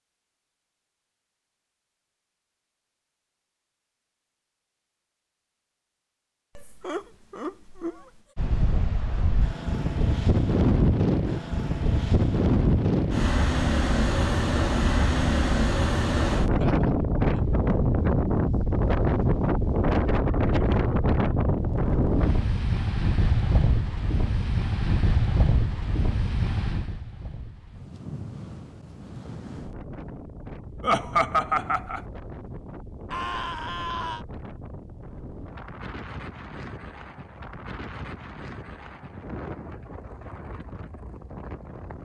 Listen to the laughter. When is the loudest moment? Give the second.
31 s.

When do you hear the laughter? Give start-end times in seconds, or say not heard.
6.5-8.2, 16.4-17.4, 30.8-32.0.